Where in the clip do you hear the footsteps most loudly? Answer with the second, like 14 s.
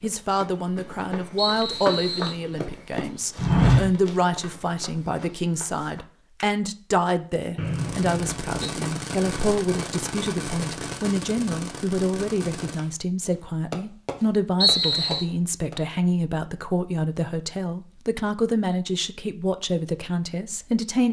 4 s.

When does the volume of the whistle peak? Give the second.
15 s.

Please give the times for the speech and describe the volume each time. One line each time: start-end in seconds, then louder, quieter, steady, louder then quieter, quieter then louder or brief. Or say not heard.
0.0-21.0 steady.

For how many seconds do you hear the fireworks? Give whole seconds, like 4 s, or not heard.
8 s.